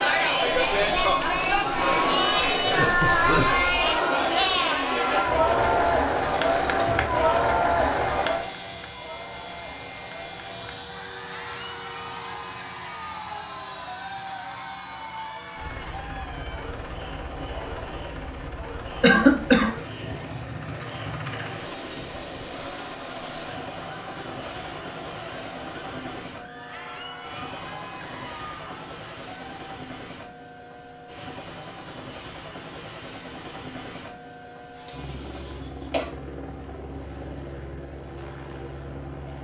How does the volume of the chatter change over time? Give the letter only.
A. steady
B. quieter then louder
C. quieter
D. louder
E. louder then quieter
C.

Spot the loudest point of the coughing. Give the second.
19 s.